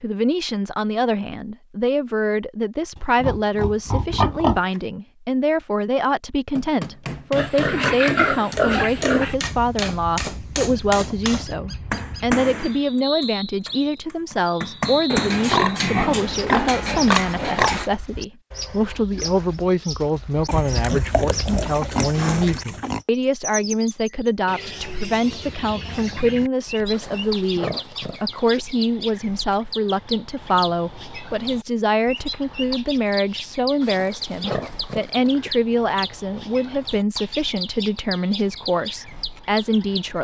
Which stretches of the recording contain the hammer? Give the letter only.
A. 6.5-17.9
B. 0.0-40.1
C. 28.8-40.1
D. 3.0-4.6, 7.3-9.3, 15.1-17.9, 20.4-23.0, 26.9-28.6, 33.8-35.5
A.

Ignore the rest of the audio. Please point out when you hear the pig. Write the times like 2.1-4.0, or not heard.
3.0-4.6, 7.3-9.3, 15.1-17.9, 20.4-23.0, 26.9-28.6, 33.8-35.5.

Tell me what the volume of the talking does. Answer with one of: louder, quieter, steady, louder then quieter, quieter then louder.
steady.